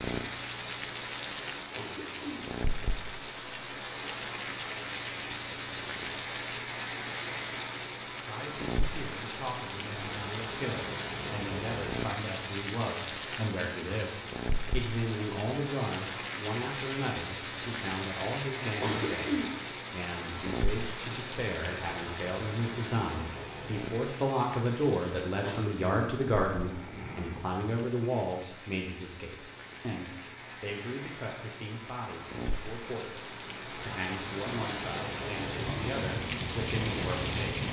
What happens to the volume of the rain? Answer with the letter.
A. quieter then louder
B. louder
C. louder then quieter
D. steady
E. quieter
A.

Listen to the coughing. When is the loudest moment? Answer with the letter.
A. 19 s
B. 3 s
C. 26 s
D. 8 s
A.